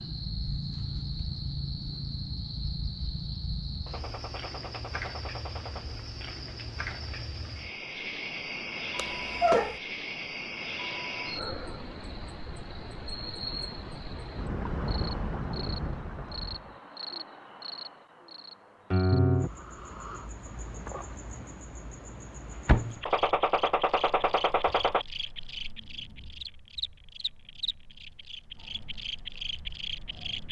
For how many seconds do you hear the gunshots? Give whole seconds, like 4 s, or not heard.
4 s.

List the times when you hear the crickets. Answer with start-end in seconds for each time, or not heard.
0.0-30.4.